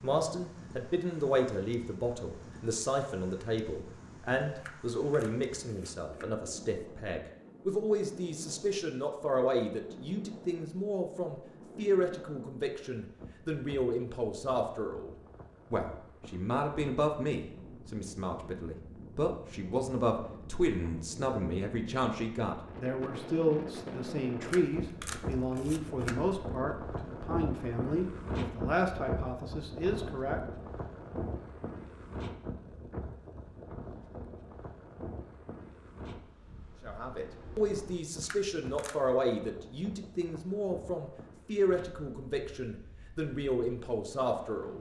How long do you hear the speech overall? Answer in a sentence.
You can hear the speech for 38 seconds altogether.